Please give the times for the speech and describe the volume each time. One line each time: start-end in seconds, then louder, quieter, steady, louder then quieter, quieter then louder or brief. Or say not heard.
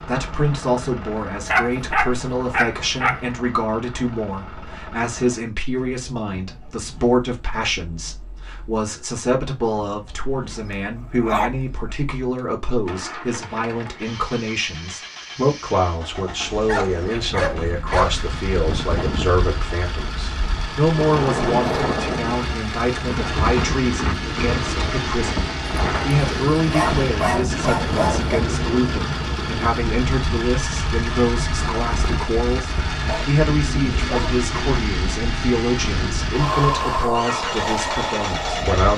0.1-38.9 steady.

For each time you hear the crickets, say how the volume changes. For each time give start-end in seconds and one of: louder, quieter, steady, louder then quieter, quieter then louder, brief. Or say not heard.
not heard.